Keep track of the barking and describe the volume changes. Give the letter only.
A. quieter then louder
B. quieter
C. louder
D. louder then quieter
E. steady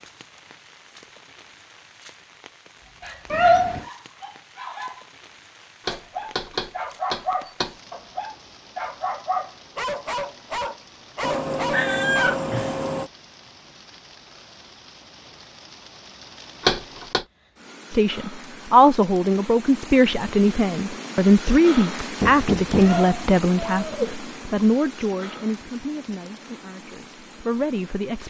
C.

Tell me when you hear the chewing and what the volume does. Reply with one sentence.
You can't hear the chewing here.